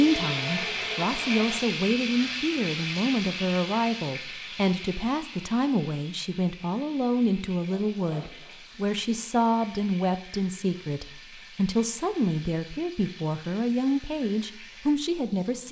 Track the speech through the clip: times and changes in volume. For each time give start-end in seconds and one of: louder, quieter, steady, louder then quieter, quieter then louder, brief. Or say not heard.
0.0-15.6 steady.